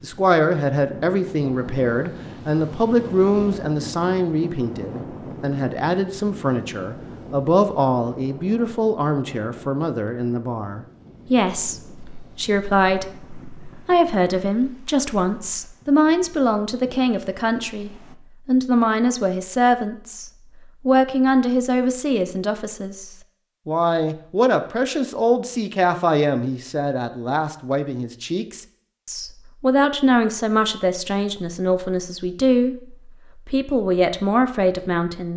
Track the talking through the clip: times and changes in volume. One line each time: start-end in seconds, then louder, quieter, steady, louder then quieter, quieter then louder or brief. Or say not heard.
0.0-35.3 steady.